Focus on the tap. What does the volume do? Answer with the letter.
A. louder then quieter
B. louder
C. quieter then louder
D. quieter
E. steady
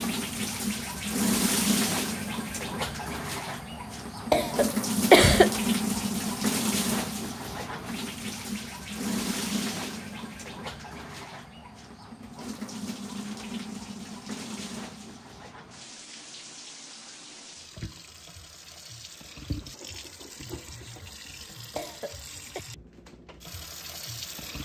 D.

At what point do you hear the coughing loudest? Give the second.
5 s.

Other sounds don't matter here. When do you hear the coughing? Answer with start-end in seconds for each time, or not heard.
4.3-5.5, 21.8-22.6.